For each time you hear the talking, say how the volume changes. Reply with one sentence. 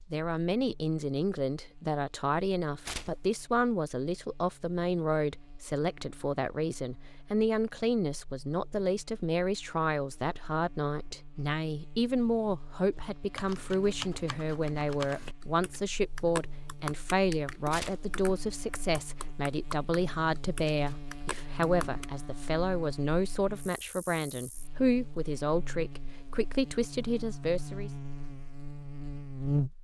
The talking can be heard from 0.1 to 27.9 s, at a steady volume.